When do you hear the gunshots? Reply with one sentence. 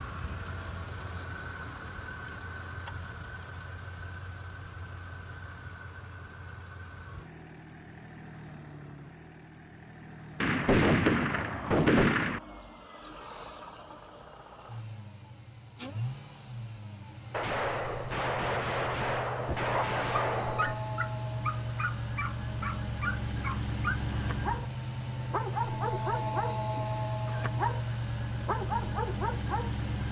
You can hear the gunshots from 10.4 to 12.4 s and from 17.3 to 20.8 s.